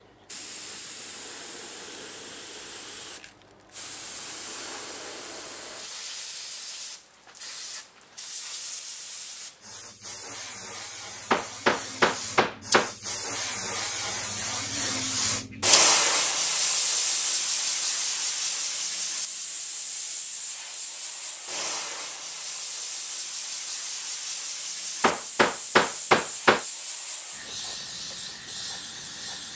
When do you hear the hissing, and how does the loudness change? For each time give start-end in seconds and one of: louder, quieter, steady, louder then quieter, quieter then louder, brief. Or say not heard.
0.0-29.5 louder then quieter.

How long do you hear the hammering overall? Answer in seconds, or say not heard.
3 s.